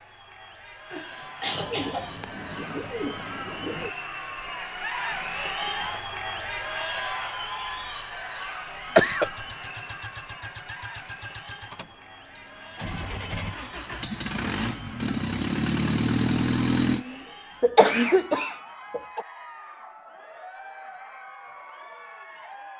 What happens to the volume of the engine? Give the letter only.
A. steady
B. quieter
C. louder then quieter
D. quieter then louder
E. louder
E.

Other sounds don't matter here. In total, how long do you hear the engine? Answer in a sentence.
You can hear the engine for 8 seconds altogether.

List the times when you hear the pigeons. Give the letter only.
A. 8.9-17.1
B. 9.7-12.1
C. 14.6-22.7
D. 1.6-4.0
D.